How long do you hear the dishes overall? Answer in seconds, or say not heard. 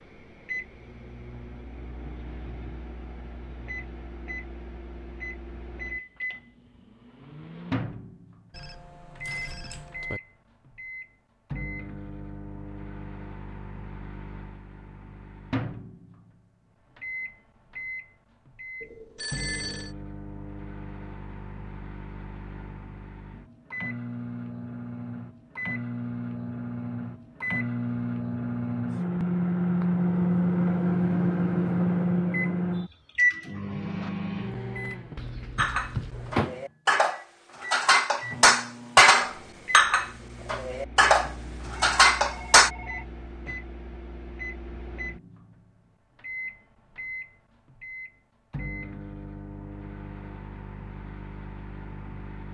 7 s.